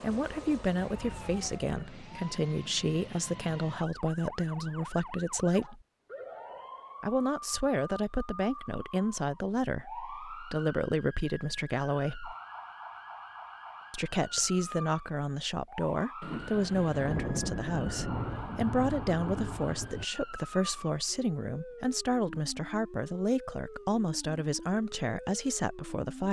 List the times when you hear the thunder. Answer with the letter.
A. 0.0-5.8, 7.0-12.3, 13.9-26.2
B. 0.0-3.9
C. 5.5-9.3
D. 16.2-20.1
D.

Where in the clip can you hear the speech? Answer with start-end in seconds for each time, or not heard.
0.0-5.8, 7.0-12.3, 13.9-26.2.